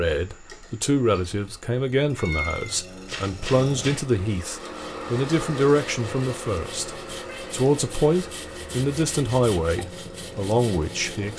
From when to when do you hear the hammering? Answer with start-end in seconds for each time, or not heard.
not heard.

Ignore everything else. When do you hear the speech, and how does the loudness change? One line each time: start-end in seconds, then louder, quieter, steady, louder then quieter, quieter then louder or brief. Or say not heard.
0.0-11.3 steady.